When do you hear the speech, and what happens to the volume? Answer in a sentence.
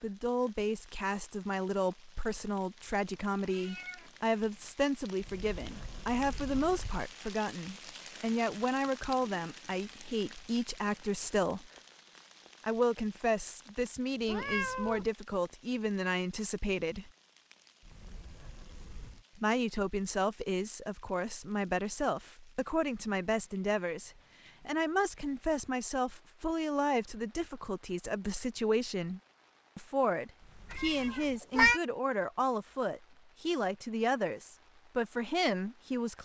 The speech can be heard from 0.0 to 11.7 s, at a steady volume; from 12.6 to 17.1 s, at a steady volume; and from 19.4 to 36.1 s, at a steady volume.